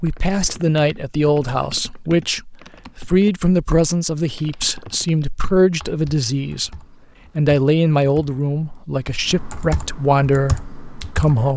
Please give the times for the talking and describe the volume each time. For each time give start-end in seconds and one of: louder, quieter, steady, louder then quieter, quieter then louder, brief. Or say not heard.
0.0-11.5 steady.